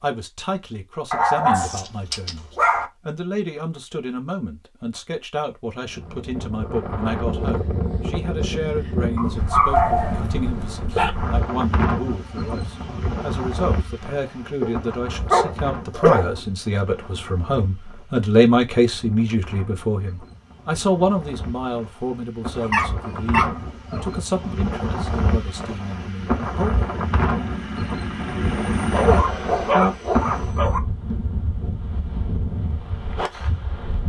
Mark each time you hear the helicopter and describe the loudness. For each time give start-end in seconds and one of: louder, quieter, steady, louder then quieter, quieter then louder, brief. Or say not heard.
25.7-29.8 louder.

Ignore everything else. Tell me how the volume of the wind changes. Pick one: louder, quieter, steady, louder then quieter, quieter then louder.
quieter then louder.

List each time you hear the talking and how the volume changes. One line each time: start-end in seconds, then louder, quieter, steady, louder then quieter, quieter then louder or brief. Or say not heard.
0.0-26.9 louder then quieter.